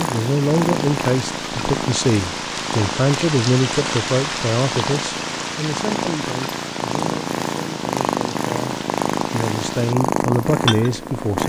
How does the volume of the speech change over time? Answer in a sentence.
The volume of the speech goes down, then up.